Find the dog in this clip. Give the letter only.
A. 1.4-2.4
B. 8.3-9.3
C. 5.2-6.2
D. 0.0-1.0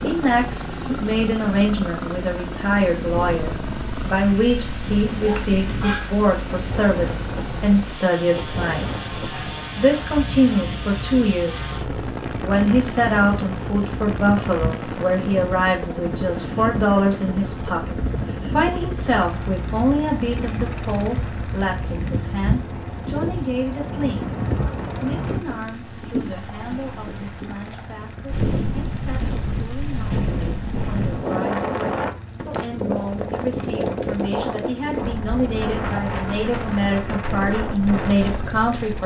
C.